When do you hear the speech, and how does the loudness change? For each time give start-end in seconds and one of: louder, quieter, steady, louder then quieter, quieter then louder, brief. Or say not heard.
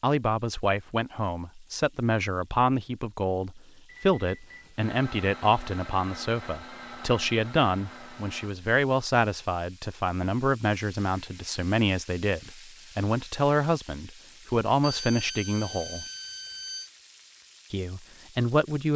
0.0-16.1 steady
17.7-18.9 brief.